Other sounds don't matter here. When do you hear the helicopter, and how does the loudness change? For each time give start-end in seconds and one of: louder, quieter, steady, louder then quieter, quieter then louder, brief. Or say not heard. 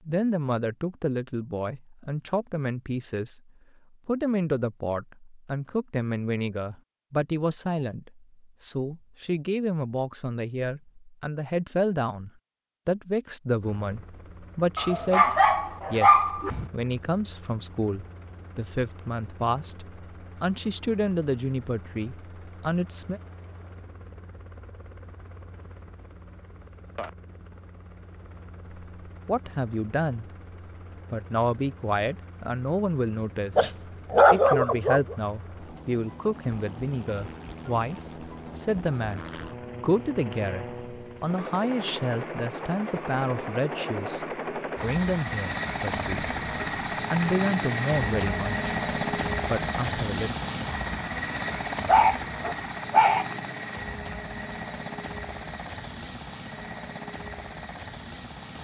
13.6-58.5 louder.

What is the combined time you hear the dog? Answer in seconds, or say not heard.
5 s.